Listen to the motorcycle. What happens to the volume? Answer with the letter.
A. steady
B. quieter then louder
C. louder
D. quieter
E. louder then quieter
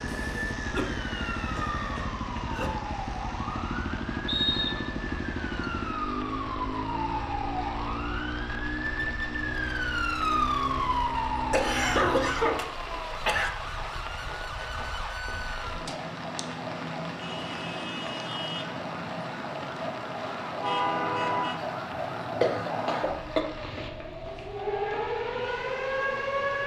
A.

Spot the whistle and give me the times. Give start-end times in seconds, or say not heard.
4.2-5.0.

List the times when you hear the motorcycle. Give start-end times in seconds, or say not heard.
0.0-12.8.